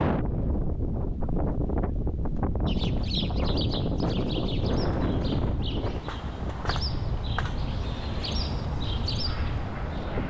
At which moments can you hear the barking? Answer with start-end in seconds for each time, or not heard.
not heard.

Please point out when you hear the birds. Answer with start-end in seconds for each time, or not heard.
2.6-10.2.